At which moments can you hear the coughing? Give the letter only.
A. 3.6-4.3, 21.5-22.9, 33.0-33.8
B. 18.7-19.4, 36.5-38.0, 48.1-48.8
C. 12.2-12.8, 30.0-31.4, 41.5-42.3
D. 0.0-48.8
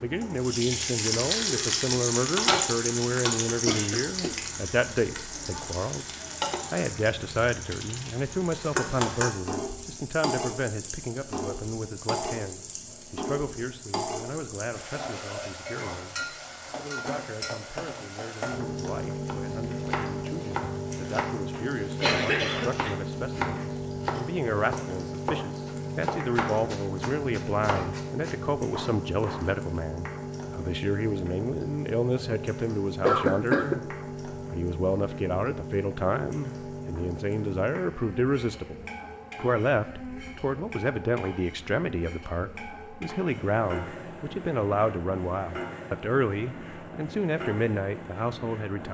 A.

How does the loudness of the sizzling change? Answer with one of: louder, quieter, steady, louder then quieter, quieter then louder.
quieter.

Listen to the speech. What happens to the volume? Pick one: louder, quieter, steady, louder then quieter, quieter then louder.
quieter then louder.